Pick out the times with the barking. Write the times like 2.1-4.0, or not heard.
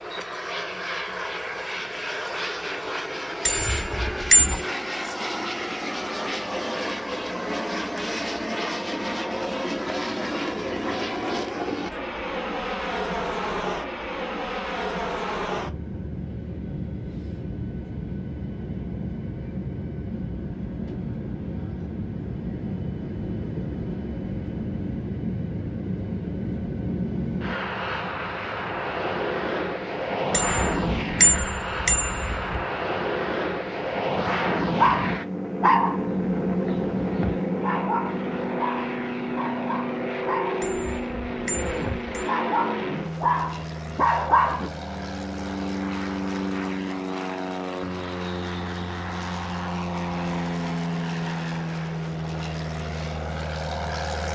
34.7-44.7.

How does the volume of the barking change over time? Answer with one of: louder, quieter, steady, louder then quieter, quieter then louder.
quieter then louder.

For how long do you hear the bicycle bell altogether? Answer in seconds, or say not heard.
5 s.